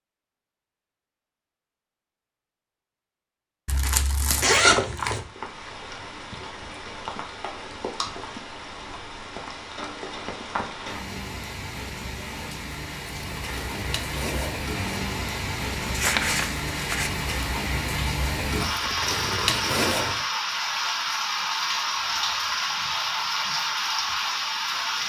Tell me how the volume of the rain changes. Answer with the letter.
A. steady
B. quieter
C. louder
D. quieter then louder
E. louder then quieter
C.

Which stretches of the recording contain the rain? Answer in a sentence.
The rain can be heard from 5.1 to 25.0 s.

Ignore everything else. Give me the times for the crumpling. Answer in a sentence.
You can hear the crumpling from 3.6 to 4.5 s and from 15.8 to 17.2 s.